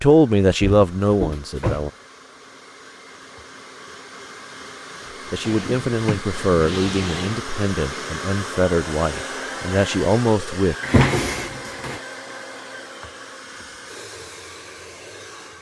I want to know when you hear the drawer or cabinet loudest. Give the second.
11 s.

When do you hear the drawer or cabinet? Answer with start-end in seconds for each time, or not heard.
0.6-1.9, 5.4-7.4, 10.8-12.0.